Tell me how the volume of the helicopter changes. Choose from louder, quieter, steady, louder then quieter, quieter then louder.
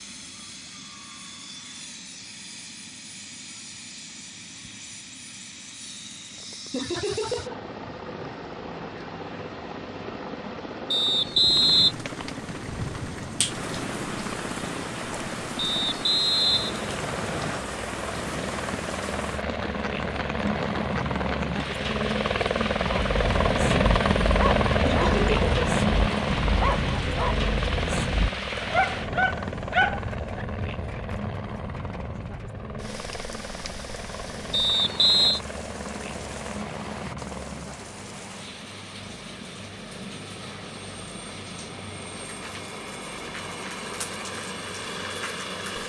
louder then quieter.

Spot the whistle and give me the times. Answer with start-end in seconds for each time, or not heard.
10.9-11.9, 15.6-17.6, 34.5-35.4.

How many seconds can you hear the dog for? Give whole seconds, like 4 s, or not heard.
8 s.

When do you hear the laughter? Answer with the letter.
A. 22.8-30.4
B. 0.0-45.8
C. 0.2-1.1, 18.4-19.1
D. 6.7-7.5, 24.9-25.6
D.